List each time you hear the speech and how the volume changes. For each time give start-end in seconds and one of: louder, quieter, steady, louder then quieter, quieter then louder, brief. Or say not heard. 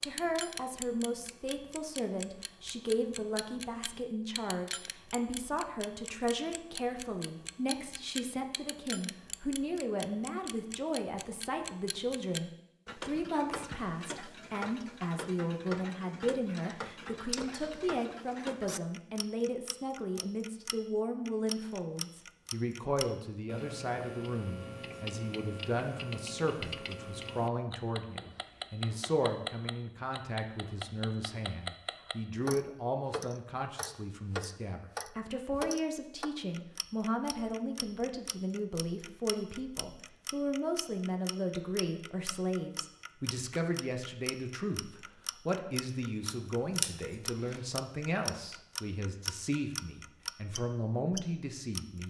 0.0-52.0 steady.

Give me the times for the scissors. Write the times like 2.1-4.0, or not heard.
46.2-47.6.